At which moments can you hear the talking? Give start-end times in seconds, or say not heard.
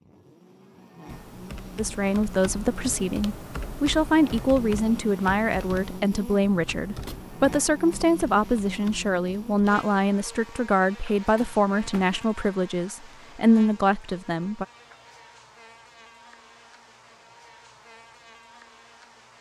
1.8-14.7.